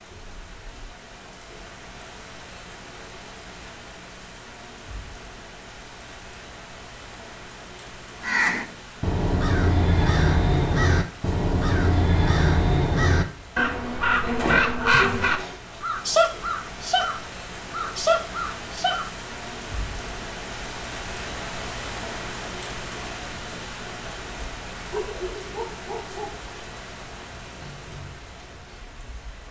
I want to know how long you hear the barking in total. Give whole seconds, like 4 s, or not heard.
2 s.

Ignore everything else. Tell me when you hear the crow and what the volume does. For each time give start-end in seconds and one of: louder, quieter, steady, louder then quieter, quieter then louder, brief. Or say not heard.
8.2-19.1 steady.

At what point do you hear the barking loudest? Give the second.
25 s.